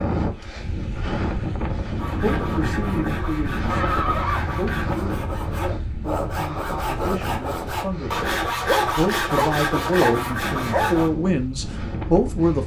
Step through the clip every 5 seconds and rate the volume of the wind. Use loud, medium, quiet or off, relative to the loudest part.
loud, medium, medium.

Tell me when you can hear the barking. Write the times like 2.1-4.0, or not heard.
8.4-10.9.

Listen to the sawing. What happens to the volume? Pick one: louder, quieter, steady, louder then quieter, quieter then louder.
louder.